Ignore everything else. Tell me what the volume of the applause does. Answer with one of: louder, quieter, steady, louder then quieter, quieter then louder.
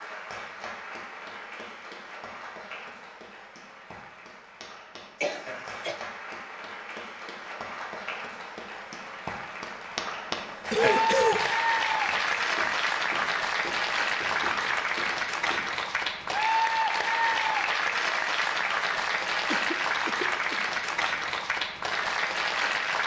louder.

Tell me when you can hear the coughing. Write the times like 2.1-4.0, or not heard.
5.2-6.0, 10.7-11.4, 19.5-20.6.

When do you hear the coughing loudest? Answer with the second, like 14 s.
11 s.